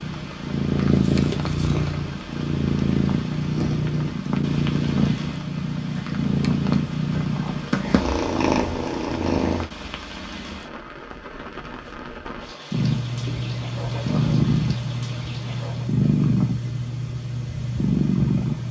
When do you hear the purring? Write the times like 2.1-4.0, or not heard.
0.0-9.7, 12.7-18.6.